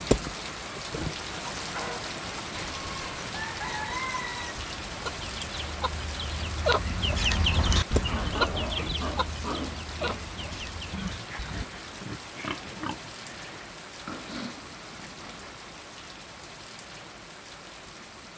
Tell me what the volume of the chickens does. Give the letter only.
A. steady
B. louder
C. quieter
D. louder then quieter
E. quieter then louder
D.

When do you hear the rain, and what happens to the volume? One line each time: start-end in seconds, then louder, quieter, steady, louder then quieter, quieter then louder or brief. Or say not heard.
0.0-18.3 quieter.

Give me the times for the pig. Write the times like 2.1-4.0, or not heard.
8.0-15.6.